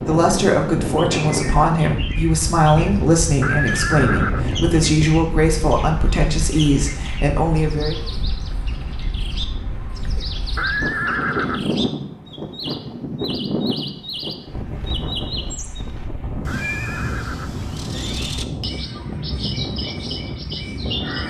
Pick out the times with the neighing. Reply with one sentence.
You can hear the neighing from 3.4 to 4.5 s, from 10.6 to 11.7 s and from 16.4 to 17.6 s.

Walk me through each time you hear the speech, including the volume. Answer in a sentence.
You can hear the speech from 0.1 to 8.0 s, at a steady volume.